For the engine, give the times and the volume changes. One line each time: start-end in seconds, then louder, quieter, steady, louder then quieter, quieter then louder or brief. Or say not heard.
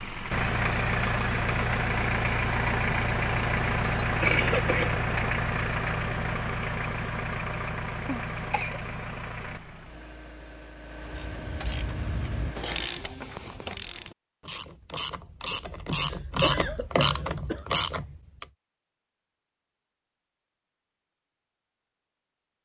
0.0-12.9 quieter.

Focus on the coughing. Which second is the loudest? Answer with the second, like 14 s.
4 s.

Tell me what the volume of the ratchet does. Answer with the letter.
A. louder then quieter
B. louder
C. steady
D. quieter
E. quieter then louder
B.